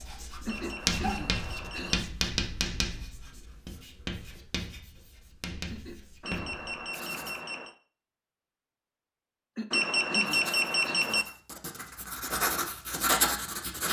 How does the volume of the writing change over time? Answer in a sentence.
The volume of the writing goes down, then up.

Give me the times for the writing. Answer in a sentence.
The writing can be heard from 0.0 to 7.4 s and from 10.2 to 13.8 s.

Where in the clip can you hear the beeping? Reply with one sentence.
The beeping can be heard from 0.5 to 2.0 s, from 6.2 to 7.8 s and from 9.7 to 11.2 s.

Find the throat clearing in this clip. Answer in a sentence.
The throat clearing can be heard from 0.5 to 2.1 s, from 5.7 to 7.3 s and from 9.6 to 11.2 s.